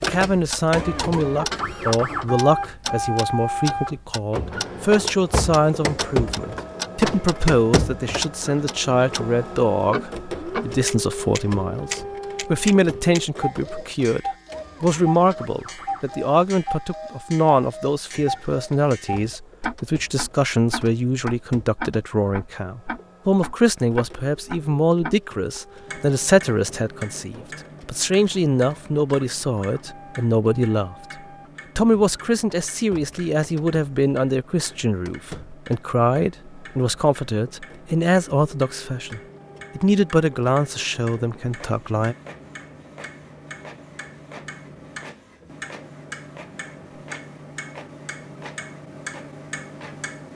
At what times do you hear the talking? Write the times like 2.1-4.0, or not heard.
0.0-30.9, 31.8-42.1.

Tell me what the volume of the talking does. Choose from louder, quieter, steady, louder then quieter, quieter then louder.
steady.